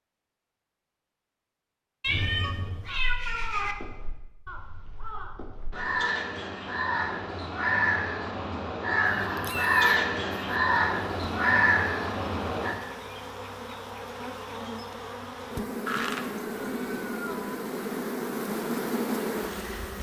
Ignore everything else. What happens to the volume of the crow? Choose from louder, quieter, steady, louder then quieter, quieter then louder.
louder.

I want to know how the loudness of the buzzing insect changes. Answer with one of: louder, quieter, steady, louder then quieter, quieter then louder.
louder.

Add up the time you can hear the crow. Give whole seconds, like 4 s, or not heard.
11 s.